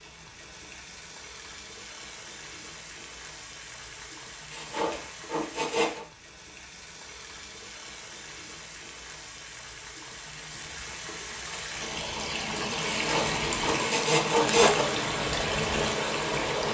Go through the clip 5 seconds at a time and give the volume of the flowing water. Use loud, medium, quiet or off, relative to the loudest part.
quiet, quiet, loud, loud.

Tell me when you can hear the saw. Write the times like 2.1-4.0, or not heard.
4.5-6.0, 12.9-14.8.